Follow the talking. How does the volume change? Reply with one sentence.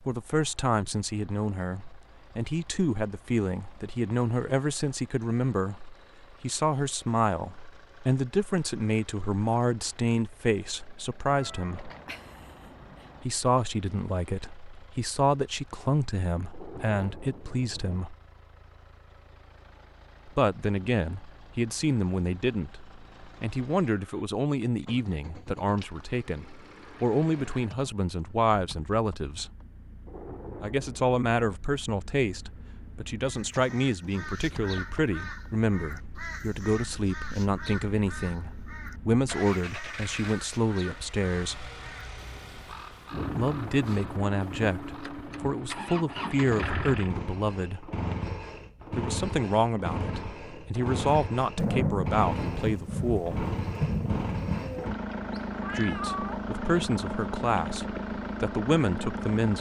The volume of the talking stays about the same.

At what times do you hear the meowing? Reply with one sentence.
You can hear the meowing from 11.2 to 13.2 s and from 55.3 to 56.9 s.